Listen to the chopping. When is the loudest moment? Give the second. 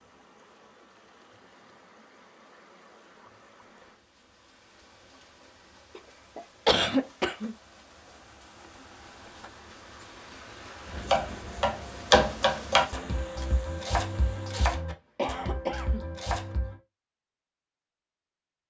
12 s.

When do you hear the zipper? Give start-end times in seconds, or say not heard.
not heard.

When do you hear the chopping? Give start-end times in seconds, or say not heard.
10.9-16.8.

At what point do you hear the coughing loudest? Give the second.
7 s.